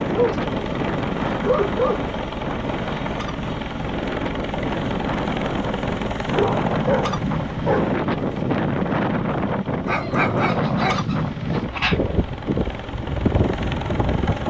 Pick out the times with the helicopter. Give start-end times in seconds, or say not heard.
0.0-14.4.